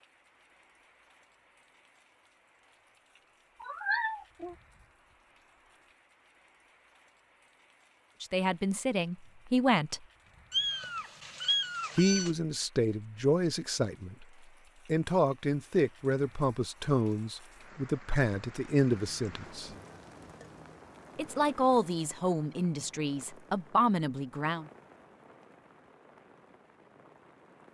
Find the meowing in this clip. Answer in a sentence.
You can hear the meowing from 3.6 to 4.5 s, from 10.5 to 12.3 s and from 18.9 to 20.8 s.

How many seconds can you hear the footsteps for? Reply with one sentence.
You can't hear the footsteps here.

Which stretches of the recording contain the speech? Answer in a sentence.
You can hear the speech from 8.2 to 10.0 s, from 11.9 to 14.2 s, from 14.8 to 19.7 s and from 21.1 to 24.6 s.